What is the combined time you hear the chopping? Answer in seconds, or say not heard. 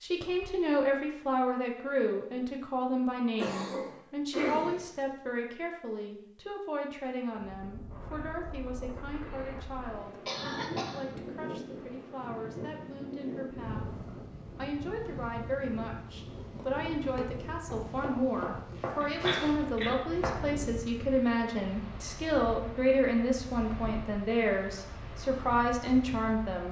3 s.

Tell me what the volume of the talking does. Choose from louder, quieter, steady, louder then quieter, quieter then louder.
quieter then louder.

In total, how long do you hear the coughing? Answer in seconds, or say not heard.
3 s.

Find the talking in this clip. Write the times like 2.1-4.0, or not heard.
0.0-13.9, 14.6-26.6.